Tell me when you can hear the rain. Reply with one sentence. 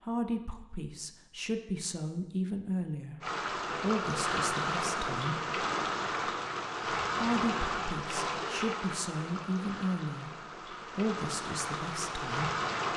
You can hear the rain from 3.2 to 12.9 s.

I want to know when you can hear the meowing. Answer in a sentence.
You can't hear the meowing here.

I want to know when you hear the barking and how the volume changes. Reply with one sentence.
You can't hear the barking here.